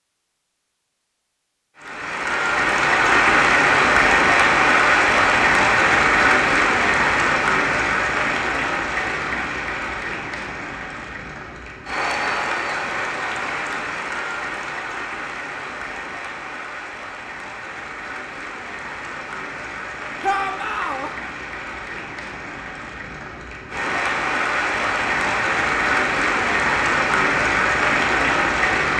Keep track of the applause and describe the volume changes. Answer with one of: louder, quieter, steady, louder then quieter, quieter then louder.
quieter then louder.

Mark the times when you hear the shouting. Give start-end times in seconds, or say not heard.
20.2-21.1.